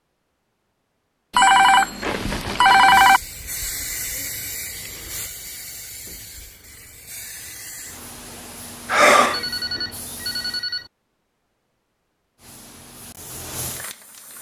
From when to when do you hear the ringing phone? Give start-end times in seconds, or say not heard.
1.3-3.2, 8.8-10.8.